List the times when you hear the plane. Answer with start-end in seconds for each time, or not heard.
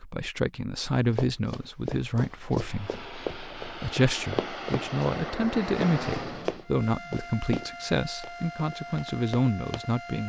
2.5-6.7.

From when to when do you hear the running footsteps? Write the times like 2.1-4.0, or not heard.
1.1-9.8.